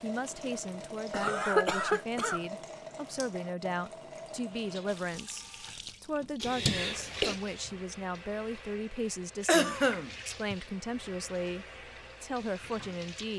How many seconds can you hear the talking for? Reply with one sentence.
The talking can be heard for 13 seconds in total.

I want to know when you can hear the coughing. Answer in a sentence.
The coughing can be heard from 1.1 to 2.4 s, from 6.4 to 7.3 s and from 9.4 to 10.6 s.